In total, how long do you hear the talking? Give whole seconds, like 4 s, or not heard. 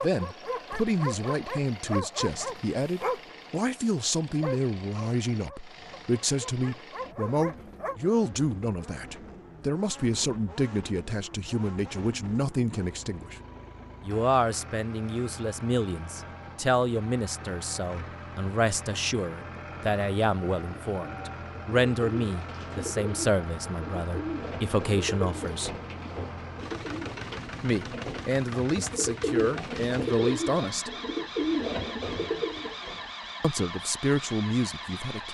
30 s.